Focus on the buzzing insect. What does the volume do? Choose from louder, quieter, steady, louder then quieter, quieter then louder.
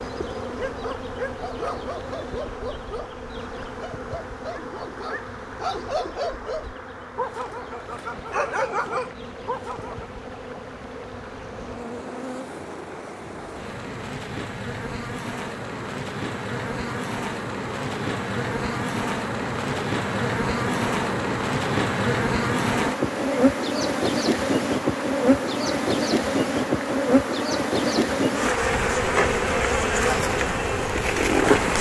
louder.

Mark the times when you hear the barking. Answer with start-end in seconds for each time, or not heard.
0.4-10.1.